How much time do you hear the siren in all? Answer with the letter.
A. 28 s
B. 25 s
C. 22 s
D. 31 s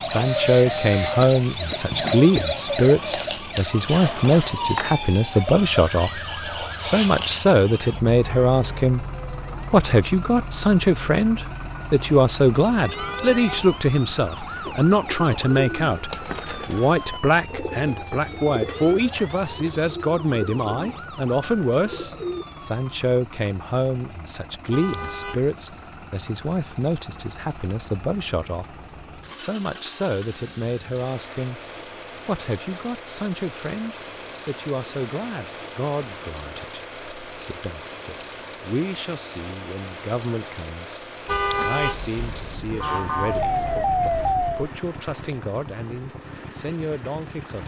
B.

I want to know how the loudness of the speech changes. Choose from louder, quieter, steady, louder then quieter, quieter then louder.
quieter.